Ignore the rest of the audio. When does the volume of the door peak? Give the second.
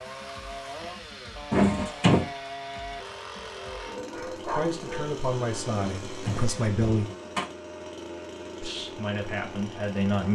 2 s.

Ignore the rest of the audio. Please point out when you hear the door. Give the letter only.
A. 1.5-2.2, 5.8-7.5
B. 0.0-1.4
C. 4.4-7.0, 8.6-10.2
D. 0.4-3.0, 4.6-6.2
A.